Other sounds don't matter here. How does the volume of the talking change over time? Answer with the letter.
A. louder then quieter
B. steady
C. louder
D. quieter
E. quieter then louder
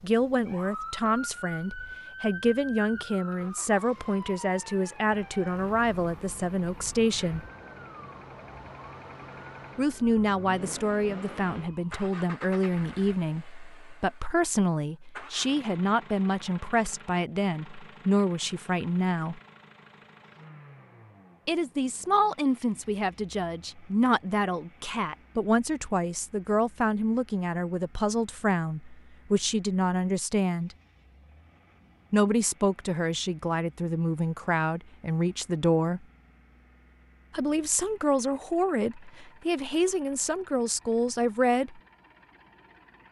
B.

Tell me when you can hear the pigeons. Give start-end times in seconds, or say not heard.
not heard.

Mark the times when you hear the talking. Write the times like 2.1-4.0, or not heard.
0.0-7.4, 9.8-19.4, 21.4-30.8, 32.1-36.0, 37.4-41.8.